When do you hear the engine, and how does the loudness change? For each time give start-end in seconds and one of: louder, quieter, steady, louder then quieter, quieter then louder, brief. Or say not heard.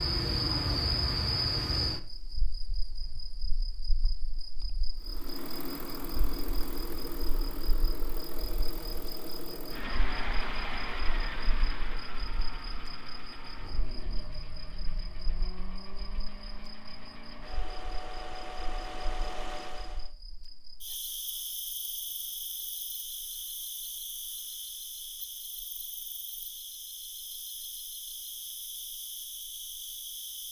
5.0-20.1 quieter then louder.